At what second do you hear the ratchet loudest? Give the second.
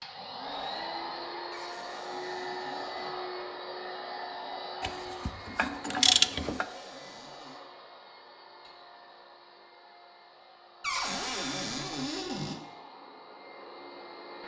6 s.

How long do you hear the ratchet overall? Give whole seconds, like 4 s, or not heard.
2 s.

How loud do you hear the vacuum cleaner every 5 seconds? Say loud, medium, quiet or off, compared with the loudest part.
loud, medium, medium.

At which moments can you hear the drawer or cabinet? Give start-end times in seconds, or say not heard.
1.5-3.1, 6.3-7.6, 10.8-12.6.